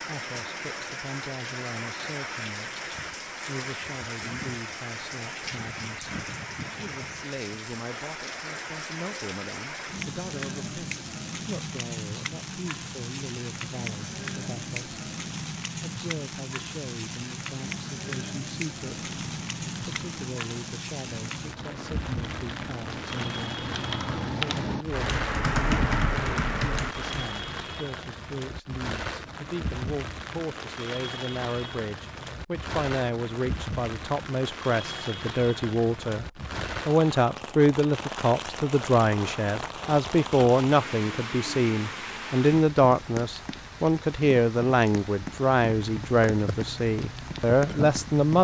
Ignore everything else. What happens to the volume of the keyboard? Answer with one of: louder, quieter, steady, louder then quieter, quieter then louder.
louder.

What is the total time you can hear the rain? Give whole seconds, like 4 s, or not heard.
48 s.